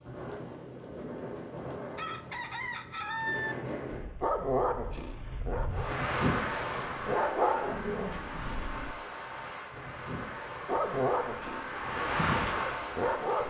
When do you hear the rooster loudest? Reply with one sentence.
The volume of the rooster peaks at 3 seconds.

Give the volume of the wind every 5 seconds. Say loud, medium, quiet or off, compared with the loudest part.
medium, loud, loud.